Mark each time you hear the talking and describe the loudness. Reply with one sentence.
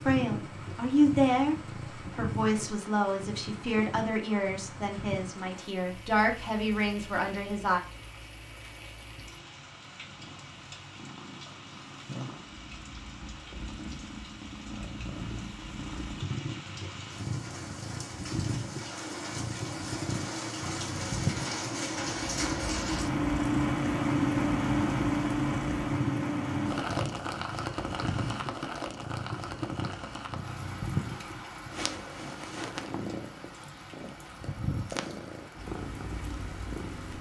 You can hear the talking from 0.1 to 7.8 s, getting quieter then louder.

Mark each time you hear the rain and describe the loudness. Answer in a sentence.
You can hear the rain from 0.0 to 37.1 s, getting louder then quieter.